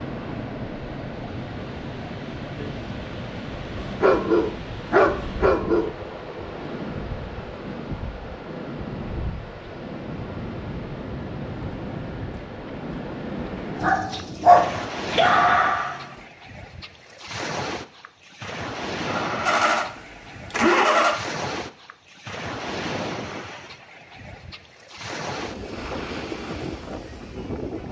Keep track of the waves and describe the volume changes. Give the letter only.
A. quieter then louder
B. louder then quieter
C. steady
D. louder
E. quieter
C.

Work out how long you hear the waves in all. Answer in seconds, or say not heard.
28 s.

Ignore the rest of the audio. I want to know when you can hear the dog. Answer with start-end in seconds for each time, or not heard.
3.8-5.9, 13.8-16.1.